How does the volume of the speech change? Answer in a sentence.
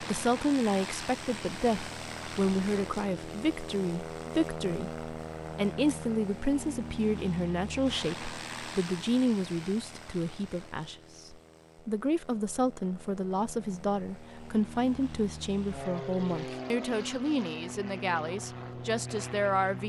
The volume of the speech stays about the same.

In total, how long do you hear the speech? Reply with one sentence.
The speech can be heard for 20 seconds in total.